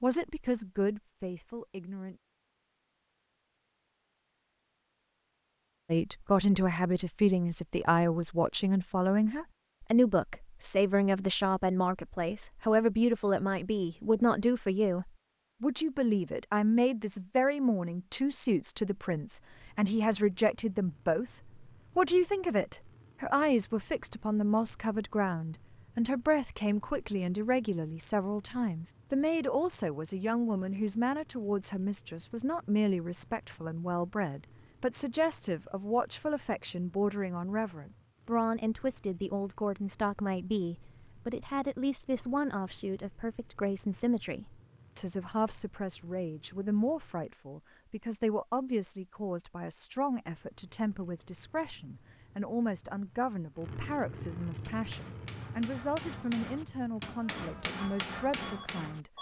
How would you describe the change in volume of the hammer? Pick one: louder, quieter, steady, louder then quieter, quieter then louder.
louder.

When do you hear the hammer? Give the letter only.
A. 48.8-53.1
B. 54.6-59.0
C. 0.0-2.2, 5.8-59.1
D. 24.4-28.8
B.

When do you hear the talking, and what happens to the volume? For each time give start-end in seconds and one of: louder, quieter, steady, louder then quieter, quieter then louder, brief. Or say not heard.
0.0-2.2 brief
5.8-59.1 quieter.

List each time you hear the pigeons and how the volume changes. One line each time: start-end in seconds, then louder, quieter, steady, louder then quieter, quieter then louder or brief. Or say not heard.
not heard.